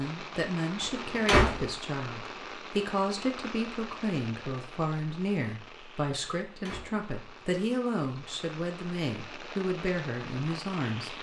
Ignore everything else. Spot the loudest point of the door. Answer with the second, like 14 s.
1 s.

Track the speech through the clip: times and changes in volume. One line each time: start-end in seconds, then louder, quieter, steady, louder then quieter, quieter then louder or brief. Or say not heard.
0.0-11.1 steady.